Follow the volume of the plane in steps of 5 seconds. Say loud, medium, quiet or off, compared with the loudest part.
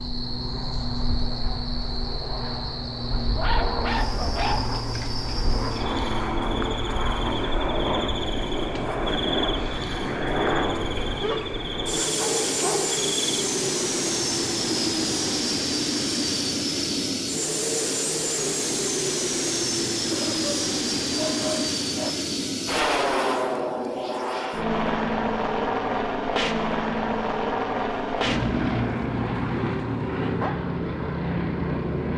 medium, loud, loud, loud, loud, loud, loud.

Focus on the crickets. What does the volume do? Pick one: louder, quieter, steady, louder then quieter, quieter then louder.
steady.